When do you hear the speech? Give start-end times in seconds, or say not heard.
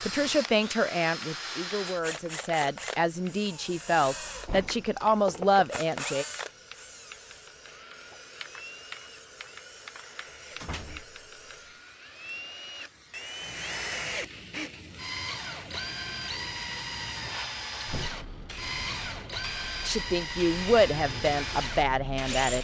0.0-6.2, 19.9-22.6.